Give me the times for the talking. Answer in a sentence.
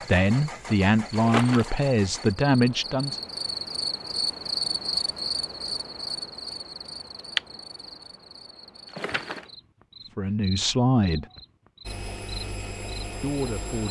You can hear the talking from 0.1 to 3.1 s, from 10.2 to 11.2 s and from 13.2 to 13.8 s.